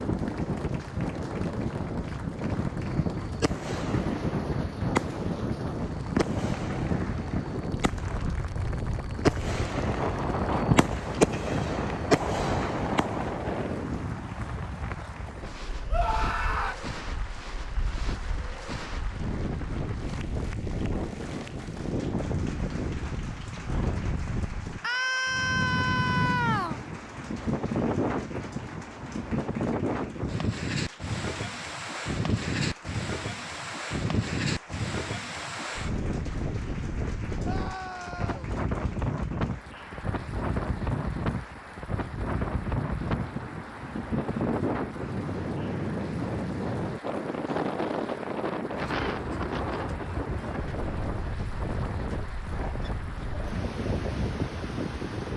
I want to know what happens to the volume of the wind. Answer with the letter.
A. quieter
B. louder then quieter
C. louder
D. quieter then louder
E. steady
E.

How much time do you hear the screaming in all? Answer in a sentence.
The screaming can be heard for 4 seconds in total.